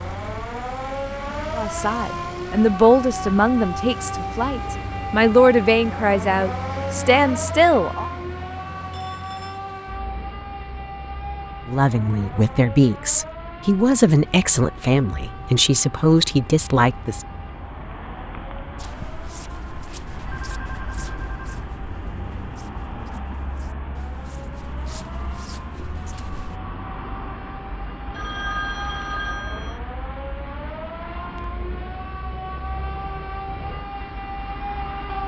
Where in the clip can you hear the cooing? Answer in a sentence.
You can't hear the cooing here.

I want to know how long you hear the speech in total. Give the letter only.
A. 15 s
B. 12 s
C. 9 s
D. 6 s
B.